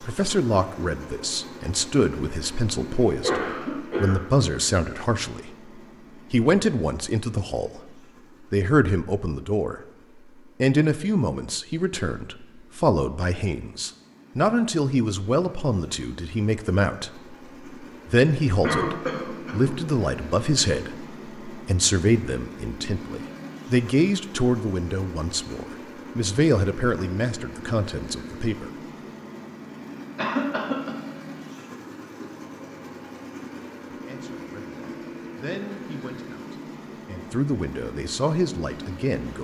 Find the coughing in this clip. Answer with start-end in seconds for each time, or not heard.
3.2-4.2, 18.6-19.8, 30.1-30.9.